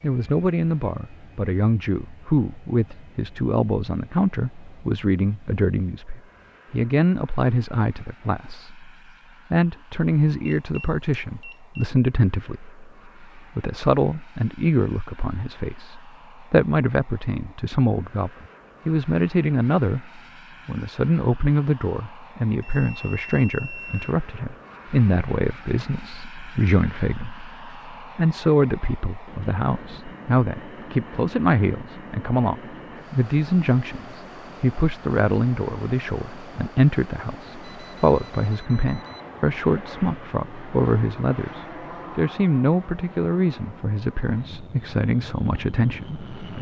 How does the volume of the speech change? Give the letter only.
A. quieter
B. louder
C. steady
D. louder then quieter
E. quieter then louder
C.